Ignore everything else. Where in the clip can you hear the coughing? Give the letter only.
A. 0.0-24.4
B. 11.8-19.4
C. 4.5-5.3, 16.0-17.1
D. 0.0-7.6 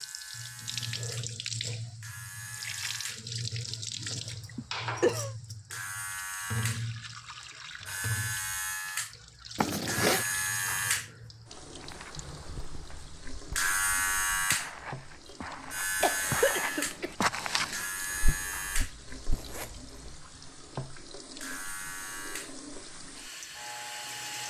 C.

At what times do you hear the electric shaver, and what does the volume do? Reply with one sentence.
You can hear the electric shaver from 0.0 to 24.4 s, getting louder then quieter.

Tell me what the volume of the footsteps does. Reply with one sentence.
The volume of the footsteps goes up, then down.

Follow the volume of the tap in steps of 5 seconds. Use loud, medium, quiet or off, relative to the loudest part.
loud, loud, medium, quiet, medium.